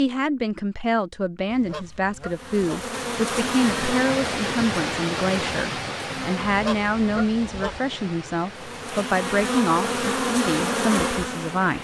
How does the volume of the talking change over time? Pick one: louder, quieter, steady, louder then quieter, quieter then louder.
steady.